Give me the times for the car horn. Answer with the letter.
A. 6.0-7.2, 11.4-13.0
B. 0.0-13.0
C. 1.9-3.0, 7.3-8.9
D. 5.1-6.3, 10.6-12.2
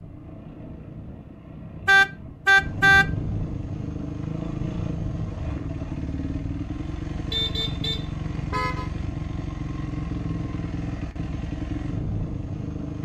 C.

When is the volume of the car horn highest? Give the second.
3 s.